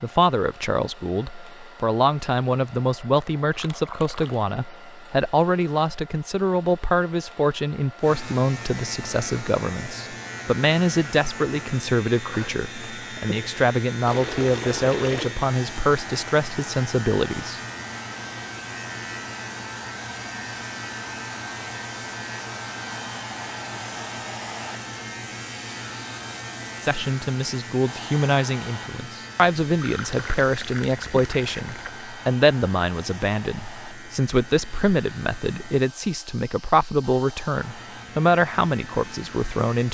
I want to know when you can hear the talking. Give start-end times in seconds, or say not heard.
0.0-17.6, 26.8-39.8.